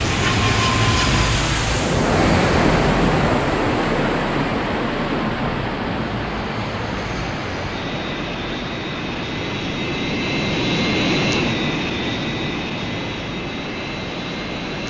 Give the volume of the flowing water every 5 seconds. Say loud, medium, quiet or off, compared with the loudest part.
loud, medium, quiet.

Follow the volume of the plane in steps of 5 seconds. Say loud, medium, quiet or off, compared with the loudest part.
loud, medium, loud.